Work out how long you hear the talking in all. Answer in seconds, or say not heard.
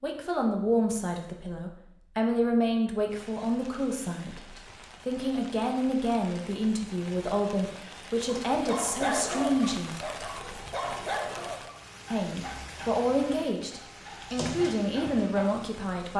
14 s.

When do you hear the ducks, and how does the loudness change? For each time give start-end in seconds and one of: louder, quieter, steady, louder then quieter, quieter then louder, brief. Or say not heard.
not heard.